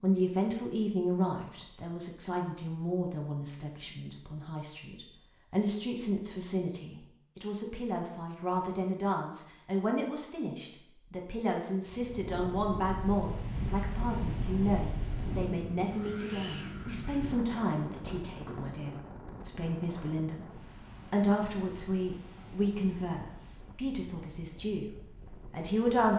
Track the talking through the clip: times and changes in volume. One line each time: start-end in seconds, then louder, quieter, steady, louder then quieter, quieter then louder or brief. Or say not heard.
0.0-26.1 steady.